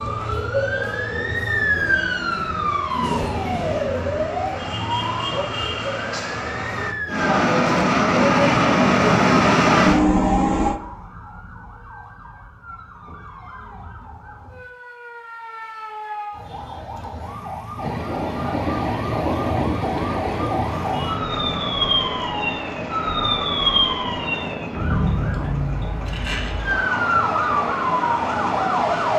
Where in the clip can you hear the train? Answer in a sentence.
The train can be heard from 0.0 to 10.8 s and from 17.8 to 29.1 s.